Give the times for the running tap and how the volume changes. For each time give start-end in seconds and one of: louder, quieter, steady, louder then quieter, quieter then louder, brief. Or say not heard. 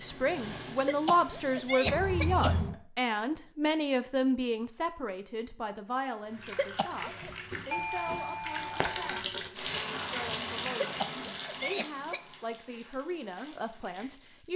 0.0-1.9 brief
6.2-14.5 louder then quieter.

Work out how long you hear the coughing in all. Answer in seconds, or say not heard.
4 s.